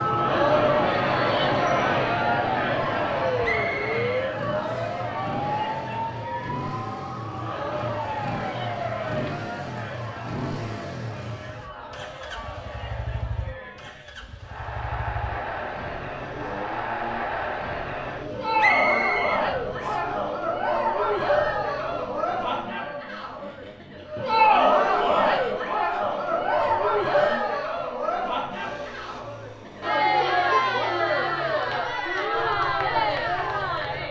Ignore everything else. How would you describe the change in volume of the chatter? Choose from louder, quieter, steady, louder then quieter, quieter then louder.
quieter then louder.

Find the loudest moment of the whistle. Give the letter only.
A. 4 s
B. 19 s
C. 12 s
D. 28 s
B.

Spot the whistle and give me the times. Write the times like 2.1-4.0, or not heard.
3.4-5.0, 18.6-20.0.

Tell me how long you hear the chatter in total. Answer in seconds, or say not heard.
34 s.